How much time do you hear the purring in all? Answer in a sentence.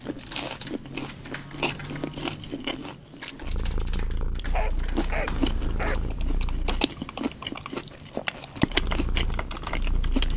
You can hear the purring for 5 seconds altogether.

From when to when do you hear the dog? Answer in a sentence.
The dog can be heard from 4.5 to 6.0 s.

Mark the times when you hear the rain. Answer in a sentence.
You can't hear the rain here.